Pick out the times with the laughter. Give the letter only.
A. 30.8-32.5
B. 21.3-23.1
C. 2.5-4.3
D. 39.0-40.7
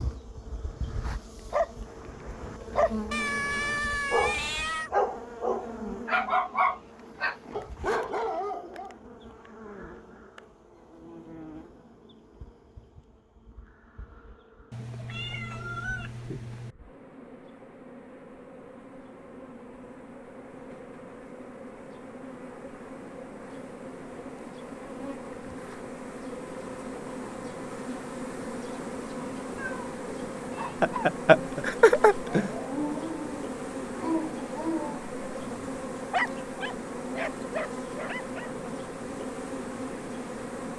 A.